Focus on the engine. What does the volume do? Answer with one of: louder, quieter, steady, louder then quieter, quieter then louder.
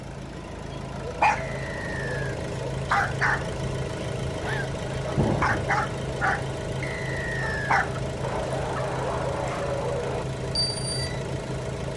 steady.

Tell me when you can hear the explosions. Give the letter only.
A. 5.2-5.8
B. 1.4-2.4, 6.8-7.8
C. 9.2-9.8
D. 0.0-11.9
A.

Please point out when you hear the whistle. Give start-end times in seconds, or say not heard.
1.4-2.4, 6.8-7.8.